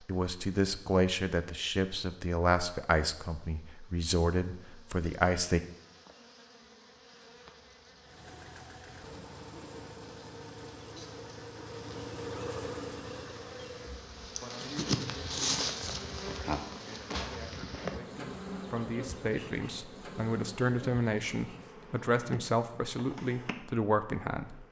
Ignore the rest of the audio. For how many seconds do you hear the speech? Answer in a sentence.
You can hear the speech for 16 seconds altogether.